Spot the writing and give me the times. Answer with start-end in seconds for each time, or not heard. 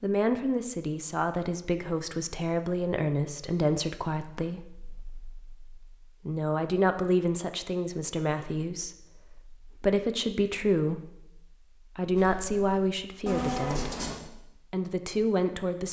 12.1-14.2.